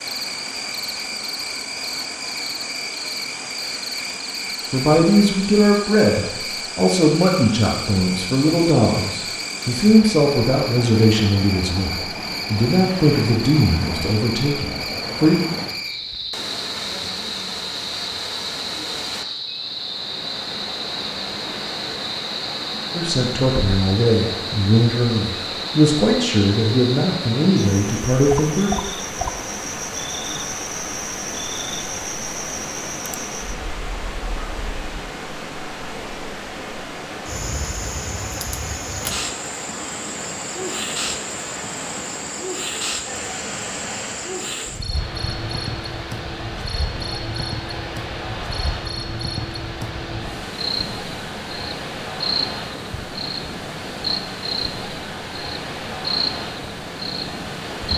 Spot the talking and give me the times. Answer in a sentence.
You can hear the talking from 4.7 to 15.3 s and from 22.9 to 28.7 s.